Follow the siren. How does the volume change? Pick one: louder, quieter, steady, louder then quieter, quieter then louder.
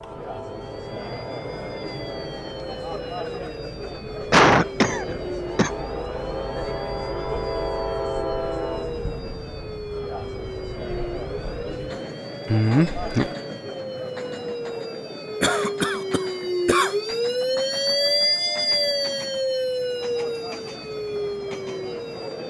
louder.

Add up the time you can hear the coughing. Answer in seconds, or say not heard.
4 s.